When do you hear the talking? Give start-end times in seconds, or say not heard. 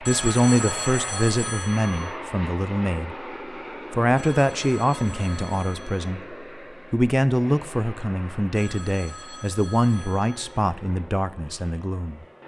0.0-3.1, 3.9-12.2.